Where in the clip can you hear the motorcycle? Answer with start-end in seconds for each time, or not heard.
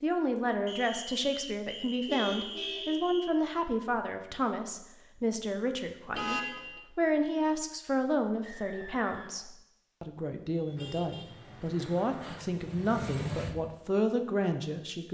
10.6-13.7.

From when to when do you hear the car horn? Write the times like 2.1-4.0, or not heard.
2.0-3.0, 6.1-6.8, 10.8-12.2.